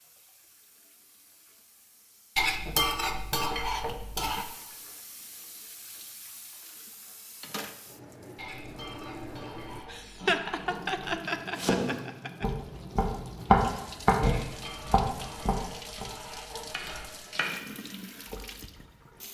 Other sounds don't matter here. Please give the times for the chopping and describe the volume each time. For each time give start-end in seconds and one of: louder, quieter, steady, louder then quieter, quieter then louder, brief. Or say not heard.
11.6-17.6 louder then quieter.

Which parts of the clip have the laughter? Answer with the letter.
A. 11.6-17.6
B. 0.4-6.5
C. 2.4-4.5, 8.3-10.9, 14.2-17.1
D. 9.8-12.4
D.